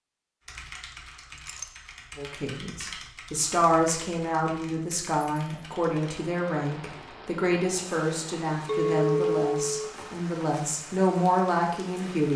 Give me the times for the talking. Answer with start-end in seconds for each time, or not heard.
2.1-12.3.